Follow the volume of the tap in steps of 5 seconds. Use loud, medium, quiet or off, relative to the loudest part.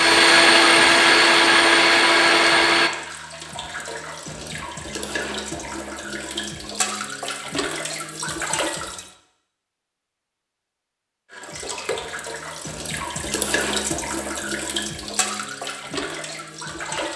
medium, loud, loud, loud.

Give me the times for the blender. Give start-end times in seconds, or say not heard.
0.0-2.9.